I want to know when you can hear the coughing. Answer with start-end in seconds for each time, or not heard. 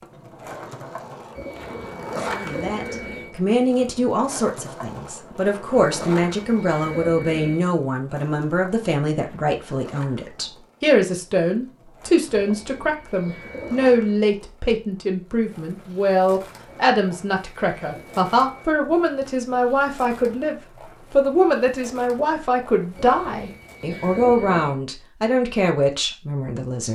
not heard.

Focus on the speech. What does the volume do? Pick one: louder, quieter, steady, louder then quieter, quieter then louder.
steady.